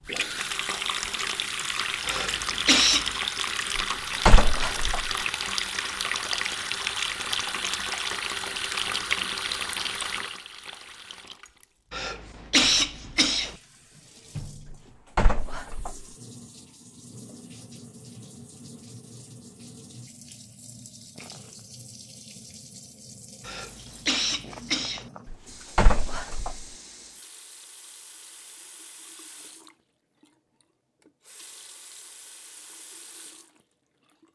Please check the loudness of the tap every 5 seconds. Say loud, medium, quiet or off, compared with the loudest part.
loud, loud, quiet, quiet, quiet, quiet, quiet.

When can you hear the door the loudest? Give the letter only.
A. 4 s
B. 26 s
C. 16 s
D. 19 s
A.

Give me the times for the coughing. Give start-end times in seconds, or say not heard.
2.0-3.1, 11.9-13.6, 23.4-25.1.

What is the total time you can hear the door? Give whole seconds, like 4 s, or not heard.
4 s.